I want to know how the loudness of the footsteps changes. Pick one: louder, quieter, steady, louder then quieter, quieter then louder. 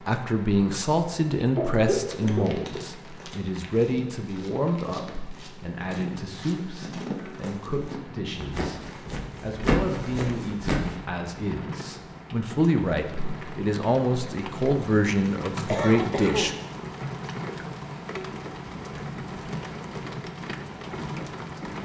louder.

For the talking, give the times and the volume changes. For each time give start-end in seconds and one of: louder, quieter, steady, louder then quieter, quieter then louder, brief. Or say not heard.
0.1-16.6 quieter then louder.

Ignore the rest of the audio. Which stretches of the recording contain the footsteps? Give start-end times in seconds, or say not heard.
1.9-10.9.